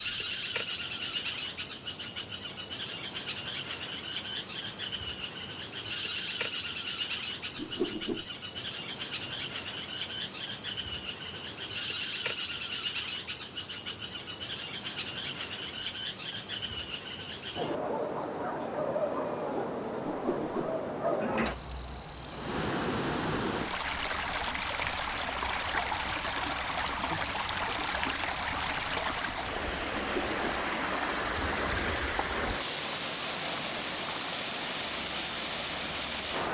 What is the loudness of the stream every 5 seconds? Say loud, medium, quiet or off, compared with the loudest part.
quiet, quiet, quiet, quiet, loud, loud, loud, loud.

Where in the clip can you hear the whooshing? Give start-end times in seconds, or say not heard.
7.5-8.2, 20.1-20.7, 29.9-30.6.